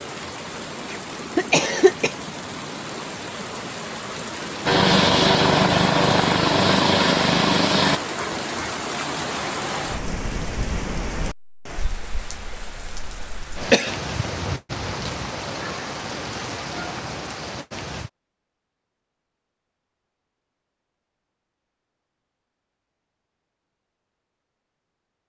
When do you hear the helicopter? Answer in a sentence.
You can hear the helicopter from 4.7 to 8.0 s.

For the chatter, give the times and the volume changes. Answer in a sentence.
You can't hear the chatter here.